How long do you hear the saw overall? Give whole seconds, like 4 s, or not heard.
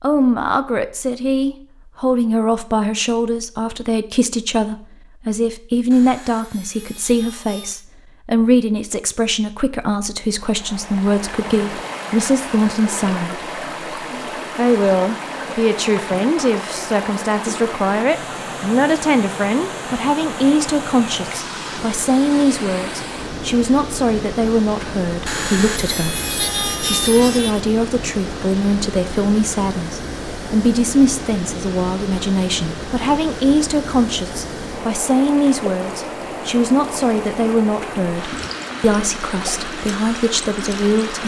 4 s.